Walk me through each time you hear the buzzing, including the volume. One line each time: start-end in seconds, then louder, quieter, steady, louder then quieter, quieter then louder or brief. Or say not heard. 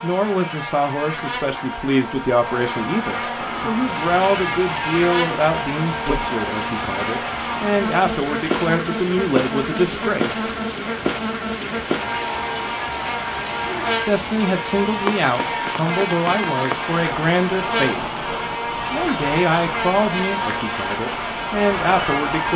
0.0-22.5 steady.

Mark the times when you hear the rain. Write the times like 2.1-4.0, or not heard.
3.4-22.5.